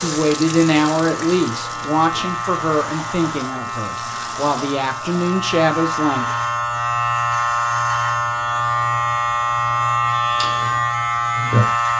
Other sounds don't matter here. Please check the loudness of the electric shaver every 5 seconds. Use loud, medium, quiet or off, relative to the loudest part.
medium, loud, loud.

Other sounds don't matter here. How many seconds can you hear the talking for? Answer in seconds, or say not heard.
6 s.